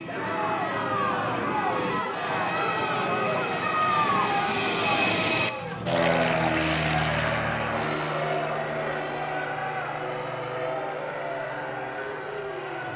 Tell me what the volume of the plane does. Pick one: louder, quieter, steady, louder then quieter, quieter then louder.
louder then quieter.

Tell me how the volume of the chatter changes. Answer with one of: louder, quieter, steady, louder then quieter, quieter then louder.
quieter.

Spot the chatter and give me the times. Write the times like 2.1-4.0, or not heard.
0.1-12.9.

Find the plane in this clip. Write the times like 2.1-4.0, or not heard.
0.0-12.9.